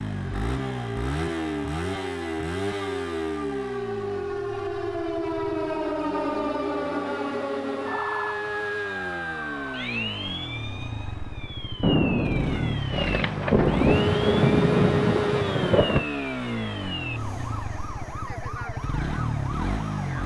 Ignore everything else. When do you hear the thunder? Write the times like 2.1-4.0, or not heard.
11.8-16.1.